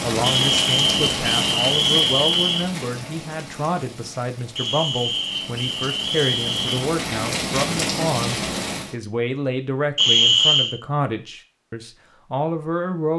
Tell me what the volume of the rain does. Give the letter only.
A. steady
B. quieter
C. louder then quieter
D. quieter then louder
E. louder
D.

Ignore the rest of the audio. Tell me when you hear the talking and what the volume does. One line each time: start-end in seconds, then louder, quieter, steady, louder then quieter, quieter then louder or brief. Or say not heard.
0.0-13.1 steady.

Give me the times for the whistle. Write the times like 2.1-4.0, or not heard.
0.2-2.6, 4.5-6.8, 9.9-10.8.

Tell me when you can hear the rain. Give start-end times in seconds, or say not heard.
0.0-8.9.